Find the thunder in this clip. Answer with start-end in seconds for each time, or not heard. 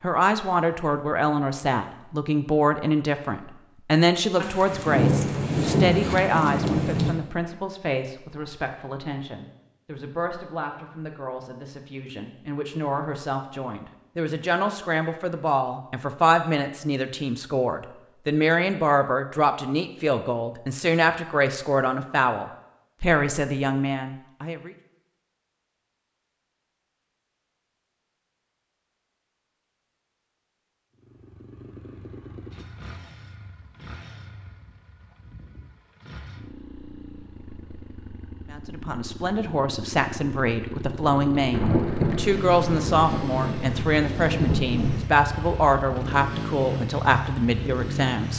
4.4-7.2, 41.5-45.0.